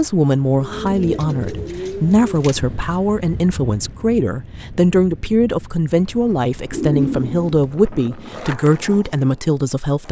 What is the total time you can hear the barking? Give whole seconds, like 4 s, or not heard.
not heard.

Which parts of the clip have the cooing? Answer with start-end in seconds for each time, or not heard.
0.6-2.6, 6.7-8.3.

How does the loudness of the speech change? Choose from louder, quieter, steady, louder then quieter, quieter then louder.
steady.